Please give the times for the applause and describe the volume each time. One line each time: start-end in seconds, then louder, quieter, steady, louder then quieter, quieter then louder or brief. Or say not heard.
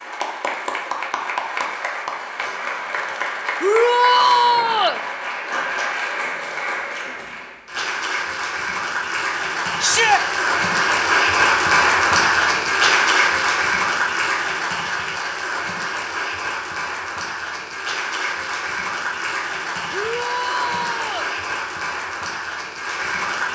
0.0-23.5 louder then quieter.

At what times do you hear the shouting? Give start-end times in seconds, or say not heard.
3.6-5.0, 9.8-10.2, 19.9-21.3.